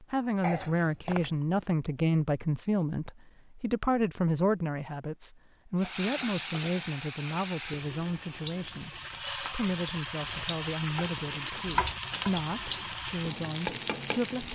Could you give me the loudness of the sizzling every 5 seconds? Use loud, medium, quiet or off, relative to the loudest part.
off, loud, loud.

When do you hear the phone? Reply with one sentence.
You can hear the phone from 0.4 to 1.4 s.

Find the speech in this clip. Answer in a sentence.
You can hear the speech from 0.0 to 14.5 s.